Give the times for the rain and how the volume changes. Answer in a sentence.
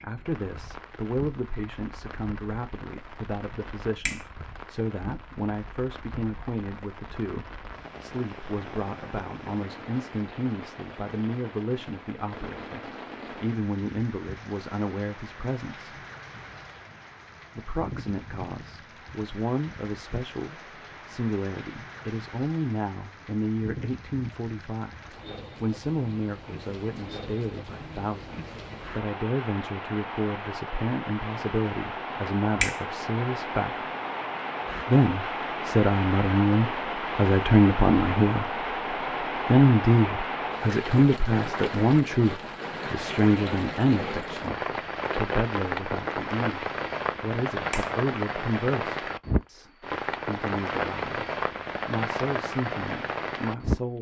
The rain can be heard from 0.0 to 53.8 s, getting louder.